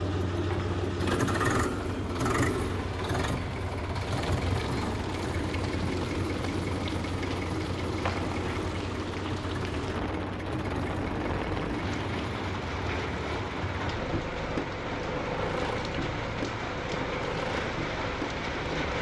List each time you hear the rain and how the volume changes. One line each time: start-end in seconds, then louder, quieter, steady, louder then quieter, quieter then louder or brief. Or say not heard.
0.0-18.9 louder.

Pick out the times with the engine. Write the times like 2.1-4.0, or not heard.
0.0-18.9.